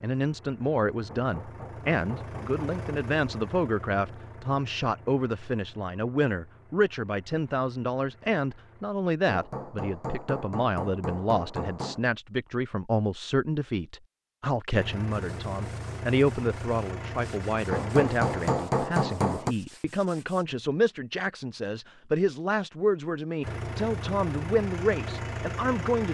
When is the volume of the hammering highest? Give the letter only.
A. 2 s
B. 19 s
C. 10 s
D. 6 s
B.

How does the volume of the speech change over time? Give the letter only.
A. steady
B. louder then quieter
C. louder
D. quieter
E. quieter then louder
A.